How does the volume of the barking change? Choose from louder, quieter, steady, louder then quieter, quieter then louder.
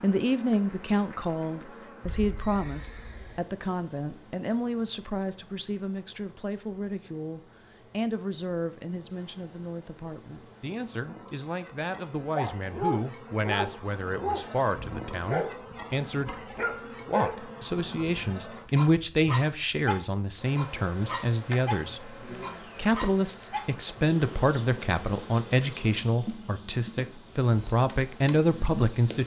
quieter.